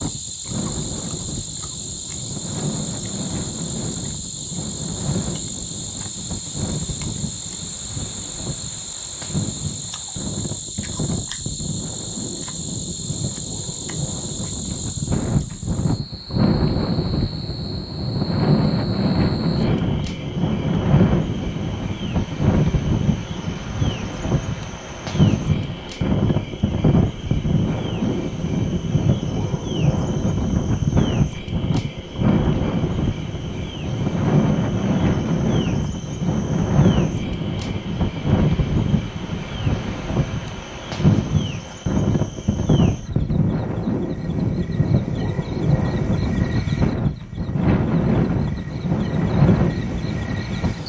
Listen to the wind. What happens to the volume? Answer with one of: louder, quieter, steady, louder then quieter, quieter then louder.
louder.